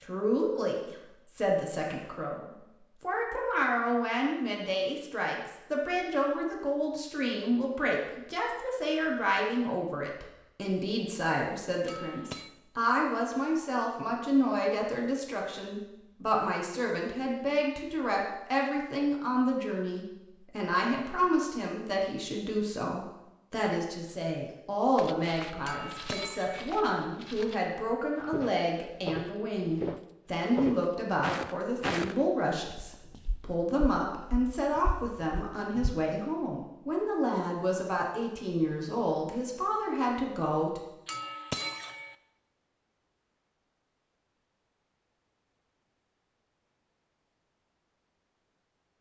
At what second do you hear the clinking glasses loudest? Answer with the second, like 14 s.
42 s.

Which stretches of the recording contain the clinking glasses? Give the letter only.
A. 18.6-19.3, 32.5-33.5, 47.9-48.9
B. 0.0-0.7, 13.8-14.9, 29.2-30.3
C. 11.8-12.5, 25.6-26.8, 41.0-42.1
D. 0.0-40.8
C.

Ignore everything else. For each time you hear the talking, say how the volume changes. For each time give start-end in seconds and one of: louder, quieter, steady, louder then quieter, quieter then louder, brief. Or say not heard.
0.0-40.8 steady.